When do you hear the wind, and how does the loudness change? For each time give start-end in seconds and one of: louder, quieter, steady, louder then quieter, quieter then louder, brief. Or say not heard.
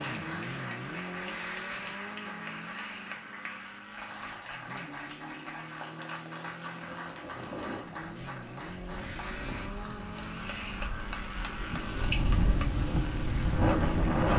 6.5-14.3 quieter then louder.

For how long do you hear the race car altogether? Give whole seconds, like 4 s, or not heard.
14 s.